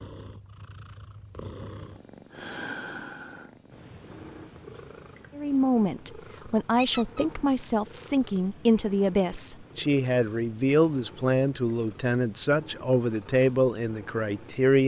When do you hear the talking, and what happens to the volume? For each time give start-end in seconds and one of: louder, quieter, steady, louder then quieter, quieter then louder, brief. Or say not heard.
5.3-14.8 steady.